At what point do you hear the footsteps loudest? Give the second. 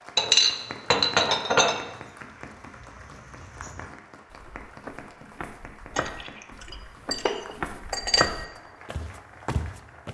8 s.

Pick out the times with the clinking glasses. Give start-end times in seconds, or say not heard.
0.1-1.9, 6.0-8.3.